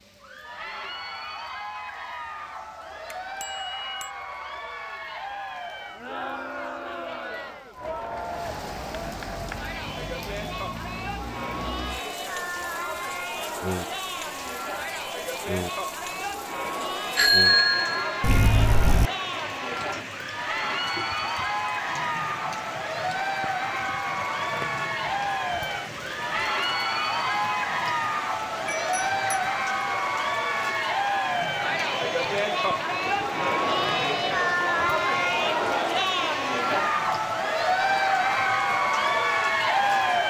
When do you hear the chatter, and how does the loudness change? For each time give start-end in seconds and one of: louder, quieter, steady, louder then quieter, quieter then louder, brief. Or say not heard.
0.1-40.2 louder.